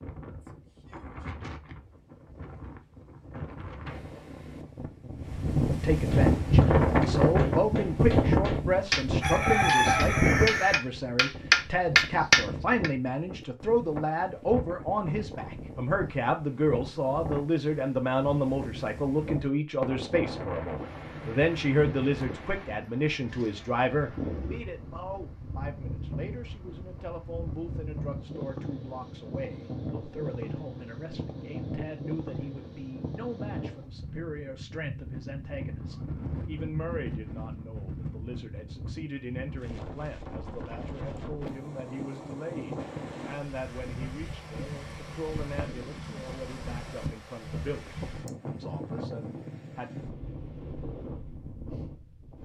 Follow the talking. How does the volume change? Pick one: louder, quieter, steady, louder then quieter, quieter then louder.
quieter.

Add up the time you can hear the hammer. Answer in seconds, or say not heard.
7 s.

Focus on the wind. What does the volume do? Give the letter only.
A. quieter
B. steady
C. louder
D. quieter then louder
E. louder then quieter
A.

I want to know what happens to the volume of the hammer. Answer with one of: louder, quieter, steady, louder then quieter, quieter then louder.
louder.